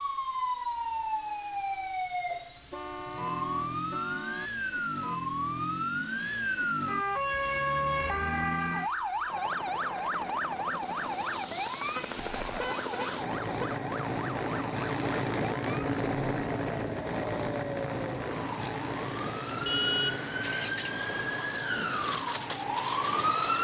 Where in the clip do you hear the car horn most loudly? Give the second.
20 s.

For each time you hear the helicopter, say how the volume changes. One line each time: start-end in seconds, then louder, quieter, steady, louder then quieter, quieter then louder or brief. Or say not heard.
0.0-23.5 louder then quieter.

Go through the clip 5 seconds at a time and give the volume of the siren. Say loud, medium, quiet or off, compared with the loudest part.
loud, loud, medium, medium, loud.